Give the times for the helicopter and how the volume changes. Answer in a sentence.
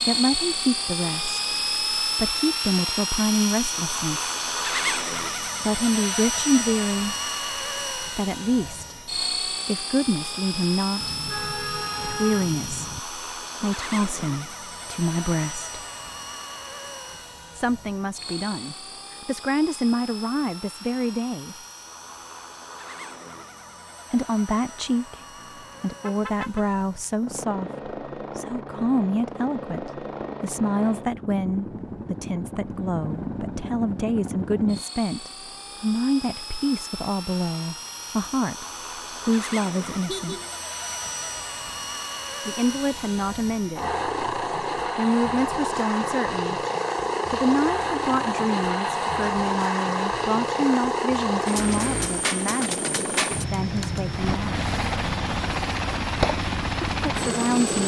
The helicopter can be heard from 0.0 to 57.8 s, getting quieter then louder.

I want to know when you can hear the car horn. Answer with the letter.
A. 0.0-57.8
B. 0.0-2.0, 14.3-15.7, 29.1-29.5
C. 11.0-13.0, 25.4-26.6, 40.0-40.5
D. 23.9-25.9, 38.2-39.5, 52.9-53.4
C.